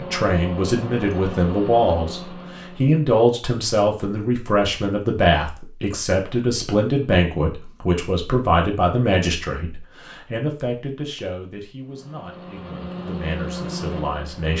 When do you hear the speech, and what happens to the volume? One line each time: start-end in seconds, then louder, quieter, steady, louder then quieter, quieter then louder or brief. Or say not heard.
0.0-14.5 quieter.